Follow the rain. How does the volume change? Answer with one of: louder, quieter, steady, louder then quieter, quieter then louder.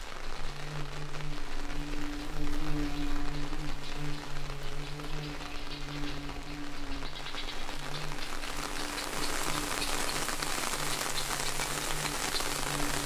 louder.